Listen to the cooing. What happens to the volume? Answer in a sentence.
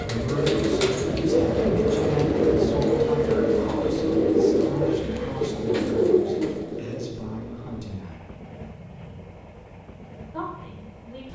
The volume of the cooing stays about the same.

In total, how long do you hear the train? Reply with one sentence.
You can hear the train for 11 seconds altogether.